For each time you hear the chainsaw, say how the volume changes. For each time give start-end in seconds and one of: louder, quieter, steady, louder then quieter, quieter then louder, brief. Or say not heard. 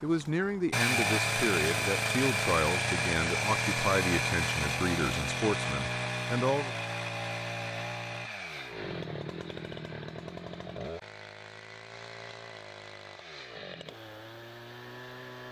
0.0-15.4 quieter.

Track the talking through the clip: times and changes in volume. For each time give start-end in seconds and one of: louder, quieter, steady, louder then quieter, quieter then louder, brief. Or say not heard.
0.0-6.8 steady.